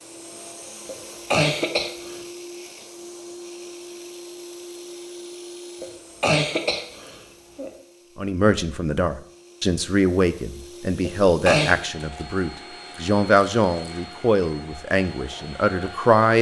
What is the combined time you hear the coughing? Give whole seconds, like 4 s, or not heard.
4 s.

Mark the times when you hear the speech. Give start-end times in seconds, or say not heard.
8.2-16.3.